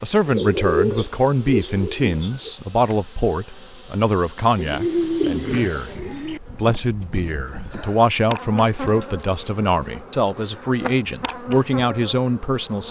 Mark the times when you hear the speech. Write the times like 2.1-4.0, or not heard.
0.0-12.8.